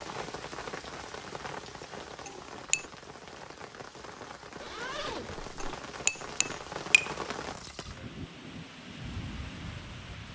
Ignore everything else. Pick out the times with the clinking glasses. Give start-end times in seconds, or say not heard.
2.2-2.9, 5.5-7.1.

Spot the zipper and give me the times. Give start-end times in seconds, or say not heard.
4.6-5.8.